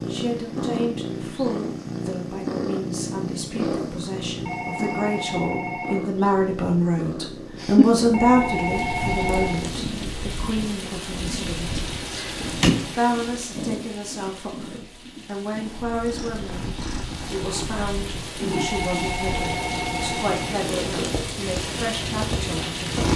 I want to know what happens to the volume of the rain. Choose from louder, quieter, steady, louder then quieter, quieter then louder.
quieter then louder.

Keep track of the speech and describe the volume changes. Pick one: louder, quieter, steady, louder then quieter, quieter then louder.
louder then quieter.